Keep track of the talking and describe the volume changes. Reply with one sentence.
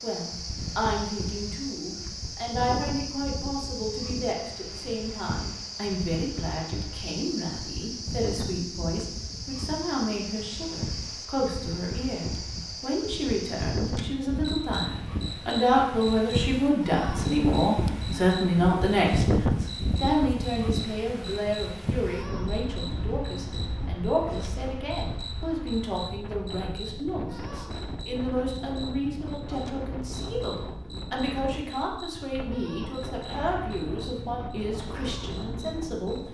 The volume of the talking goes up, then down.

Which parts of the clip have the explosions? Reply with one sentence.
You can't hear the explosions here.